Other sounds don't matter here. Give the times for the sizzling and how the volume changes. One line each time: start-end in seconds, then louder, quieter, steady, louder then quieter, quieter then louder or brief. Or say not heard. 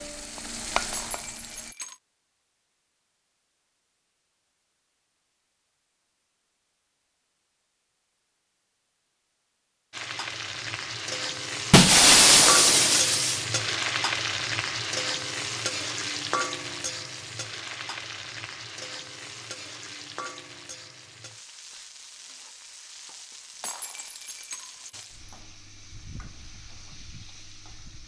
0.0-1.8 brief
9.9-28.0 quieter.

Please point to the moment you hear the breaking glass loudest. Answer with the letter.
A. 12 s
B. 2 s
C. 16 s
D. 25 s
A.